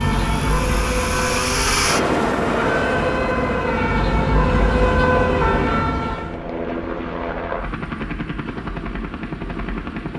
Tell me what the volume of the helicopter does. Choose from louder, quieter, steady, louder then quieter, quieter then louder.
quieter.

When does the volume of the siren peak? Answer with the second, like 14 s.
5 s.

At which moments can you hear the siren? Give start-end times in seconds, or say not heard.
0.0-6.3.